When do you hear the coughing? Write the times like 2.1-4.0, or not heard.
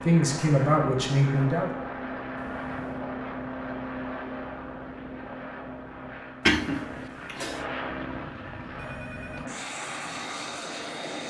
6.5-7.6.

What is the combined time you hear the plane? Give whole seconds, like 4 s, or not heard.
11 s.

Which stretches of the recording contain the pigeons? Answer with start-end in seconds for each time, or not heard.
not heard.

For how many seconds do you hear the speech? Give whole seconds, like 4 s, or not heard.
2 s.